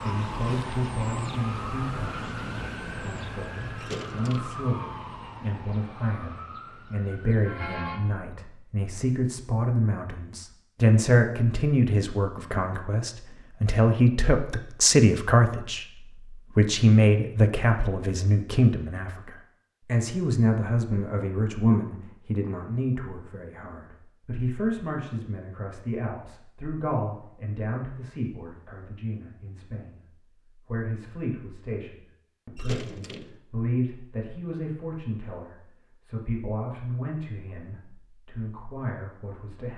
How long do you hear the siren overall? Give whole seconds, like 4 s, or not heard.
8 s.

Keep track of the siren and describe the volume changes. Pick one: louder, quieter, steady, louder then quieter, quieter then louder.
quieter.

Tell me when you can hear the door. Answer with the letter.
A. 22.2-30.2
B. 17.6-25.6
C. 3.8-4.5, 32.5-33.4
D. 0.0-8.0
C.